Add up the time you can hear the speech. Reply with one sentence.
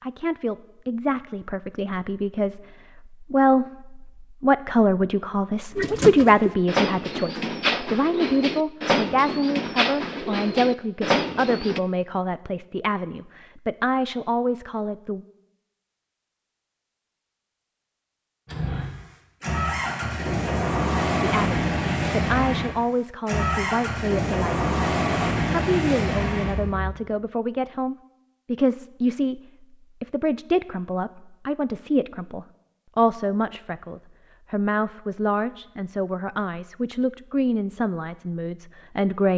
You can hear the speech for 32 seconds altogether.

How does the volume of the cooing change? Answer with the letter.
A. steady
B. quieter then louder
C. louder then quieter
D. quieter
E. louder
A.